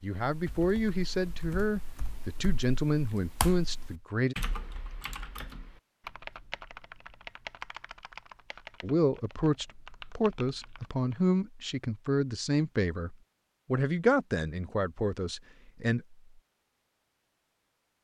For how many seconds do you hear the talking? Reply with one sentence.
The talking can be heard for 12 seconds in total.